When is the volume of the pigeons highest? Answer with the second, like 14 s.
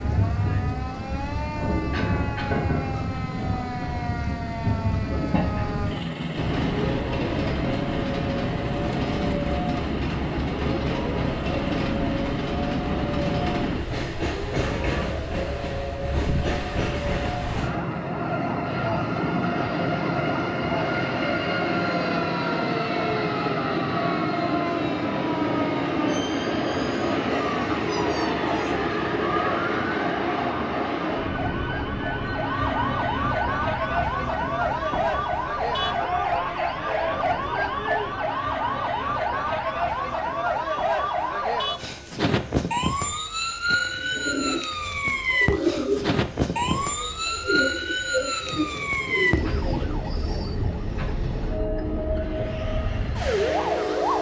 46 s.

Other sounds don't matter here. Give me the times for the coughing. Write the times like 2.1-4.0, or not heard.
1.9-2.5.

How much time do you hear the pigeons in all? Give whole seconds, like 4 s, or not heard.
7 s.